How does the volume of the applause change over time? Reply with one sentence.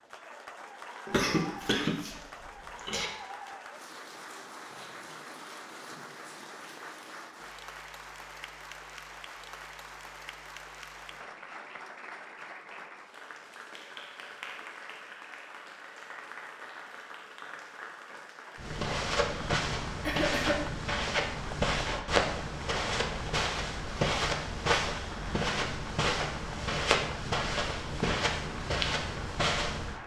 The volume of the applause stays about the same.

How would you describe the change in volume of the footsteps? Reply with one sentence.
The loudness of the footsteps stays about the same.